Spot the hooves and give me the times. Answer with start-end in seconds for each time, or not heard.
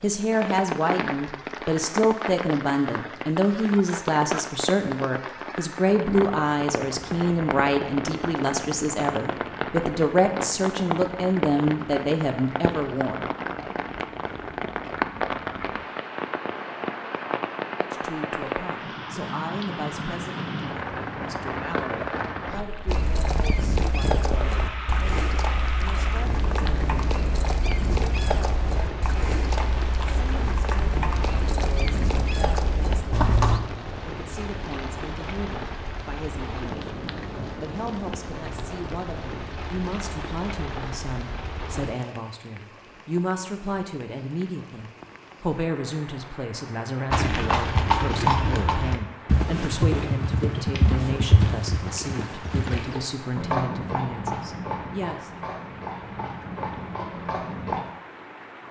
22.9-33.6, 47.1-57.9.